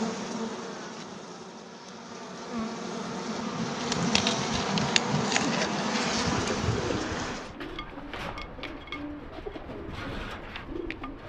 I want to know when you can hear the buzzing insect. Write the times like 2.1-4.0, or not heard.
0.0-7.5.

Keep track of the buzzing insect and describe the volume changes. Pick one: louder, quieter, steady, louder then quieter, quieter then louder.
louder.